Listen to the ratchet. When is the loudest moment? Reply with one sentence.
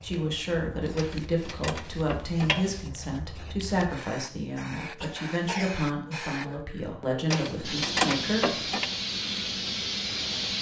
The volume of the ratchet peaks at 8 seconds.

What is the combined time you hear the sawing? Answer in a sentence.
You can't hear the sawing here.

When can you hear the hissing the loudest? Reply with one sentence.
The volume of the hissing peaks at 10 seconds.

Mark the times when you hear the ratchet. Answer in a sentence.
You can hear the ratchet from 0.9 to 2.9 s and from 7.3 to 8.8 s.